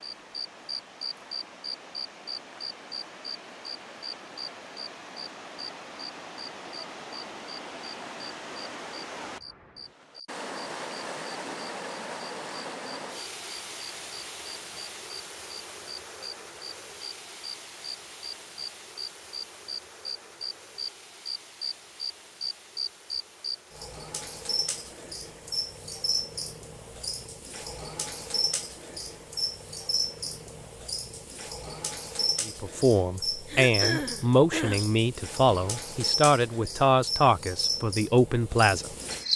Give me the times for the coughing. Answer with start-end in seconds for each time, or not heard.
33.5-34.9.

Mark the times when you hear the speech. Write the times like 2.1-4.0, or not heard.
32.5-38.9.